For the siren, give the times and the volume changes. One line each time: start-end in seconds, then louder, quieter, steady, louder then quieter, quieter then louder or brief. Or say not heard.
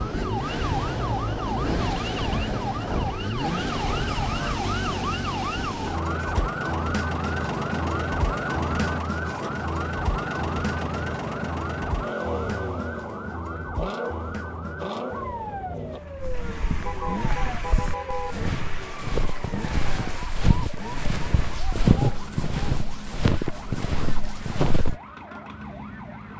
0.0-26.3 quieter.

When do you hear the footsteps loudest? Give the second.
22 s.